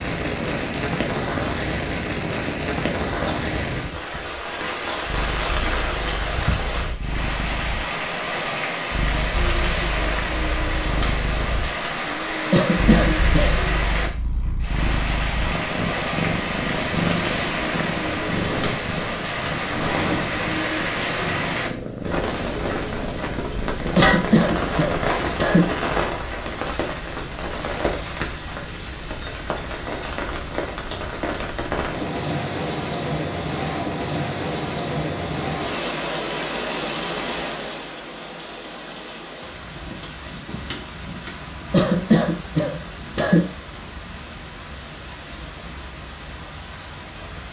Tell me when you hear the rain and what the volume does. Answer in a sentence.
You can hear the rain from 0.0 to 47.4 s, getting quieter.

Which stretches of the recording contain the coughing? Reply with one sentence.
The coughing can be heard from 12.5 to 13.6 s, from 23.9 to 25.6 s and from 41.7 to 43.5 s.